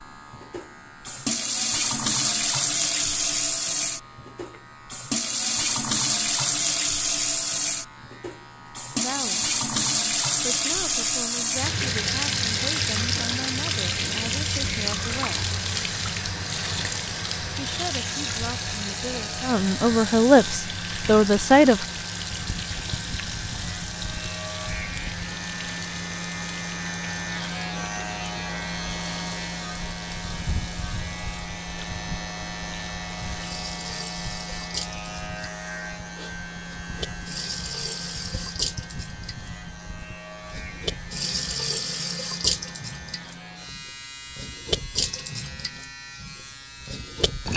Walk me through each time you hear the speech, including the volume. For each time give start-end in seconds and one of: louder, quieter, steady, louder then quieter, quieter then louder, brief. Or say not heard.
9.0-9.4 brief
10.4-15.5 steady
17.6-21.9 louder.